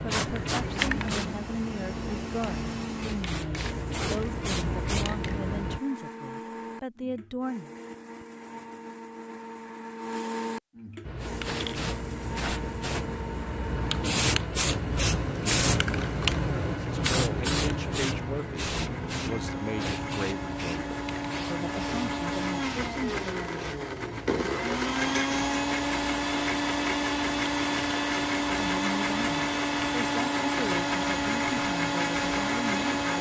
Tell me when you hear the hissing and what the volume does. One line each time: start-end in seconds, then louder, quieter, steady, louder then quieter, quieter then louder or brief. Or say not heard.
0.0-5.8 quieter then louder
11.1-33.1 quieter.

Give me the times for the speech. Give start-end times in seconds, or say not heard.
0.0-7.7, 16.8-23.1, 28.6-33.1.